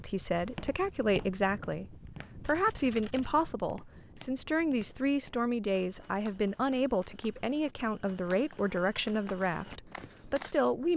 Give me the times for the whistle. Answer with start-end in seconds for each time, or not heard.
not heard.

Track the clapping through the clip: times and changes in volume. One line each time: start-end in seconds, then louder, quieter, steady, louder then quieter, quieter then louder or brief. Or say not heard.
not heard.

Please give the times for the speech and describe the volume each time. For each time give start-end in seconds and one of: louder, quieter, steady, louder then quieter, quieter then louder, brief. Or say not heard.
0.0-10.9 steady.